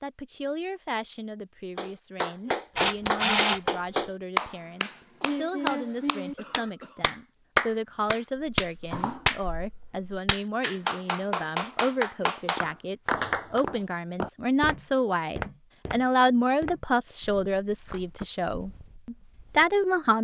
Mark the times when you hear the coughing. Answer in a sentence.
You can hear the coughing from 6.3 to 7.2 s.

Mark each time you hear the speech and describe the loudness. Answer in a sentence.
The speech can be heard from 0.0 to 20.1 s, getting louder.